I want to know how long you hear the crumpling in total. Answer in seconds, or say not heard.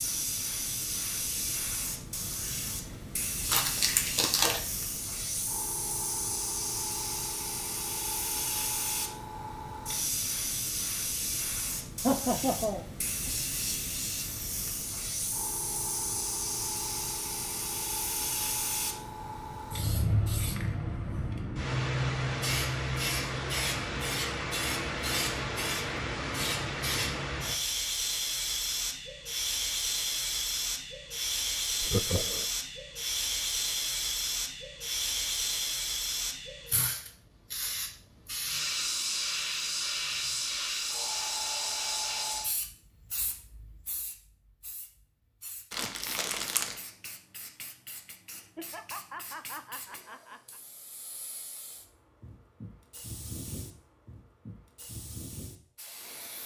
2 s.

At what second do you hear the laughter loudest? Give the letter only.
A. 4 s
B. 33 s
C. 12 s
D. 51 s
C.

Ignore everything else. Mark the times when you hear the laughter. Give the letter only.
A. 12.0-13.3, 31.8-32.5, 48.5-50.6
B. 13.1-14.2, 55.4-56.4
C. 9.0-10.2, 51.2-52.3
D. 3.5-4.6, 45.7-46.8
A.